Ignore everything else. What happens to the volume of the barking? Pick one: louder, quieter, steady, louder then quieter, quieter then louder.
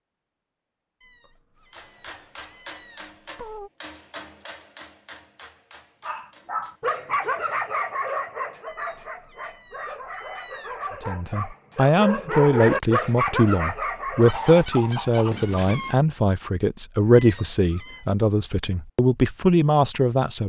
quieter then louder.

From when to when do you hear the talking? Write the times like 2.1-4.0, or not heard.
11.1-20.4.